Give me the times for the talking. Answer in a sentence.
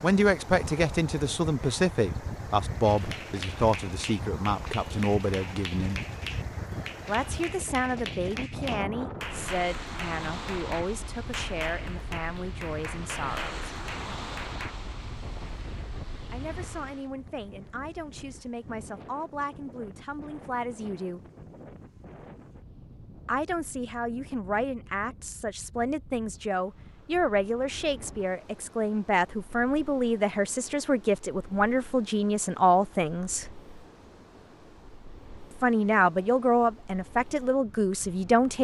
You can hear the talking from 0.0 to 6.0 s, from 7.0 to 13.8 s, from 16.3 to 21.2 s, from 23.2 to 33.5 s and from 35.6 to 38.5 s.